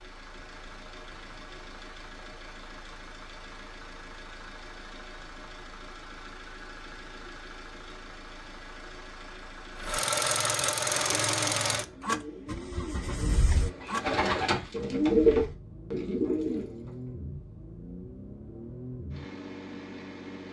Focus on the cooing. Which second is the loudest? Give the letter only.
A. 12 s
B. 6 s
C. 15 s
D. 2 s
C.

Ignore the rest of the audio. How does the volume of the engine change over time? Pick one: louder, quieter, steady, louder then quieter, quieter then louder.
louder then quieter.